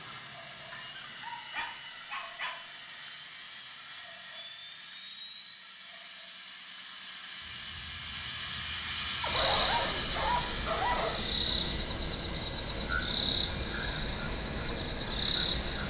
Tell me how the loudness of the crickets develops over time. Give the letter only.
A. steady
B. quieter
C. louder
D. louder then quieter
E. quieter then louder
E.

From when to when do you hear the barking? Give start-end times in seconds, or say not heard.
0.7-2.6, 9.2-11.2.